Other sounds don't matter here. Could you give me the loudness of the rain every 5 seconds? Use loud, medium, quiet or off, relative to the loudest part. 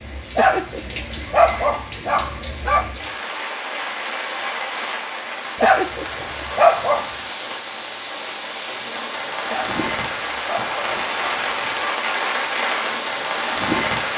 medium, medium, loud.